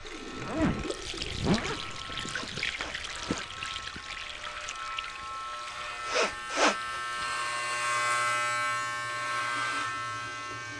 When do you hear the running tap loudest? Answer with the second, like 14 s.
3 s.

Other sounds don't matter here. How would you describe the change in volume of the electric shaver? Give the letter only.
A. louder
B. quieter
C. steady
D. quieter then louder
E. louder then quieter
A.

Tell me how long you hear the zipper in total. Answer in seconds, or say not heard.
2 s.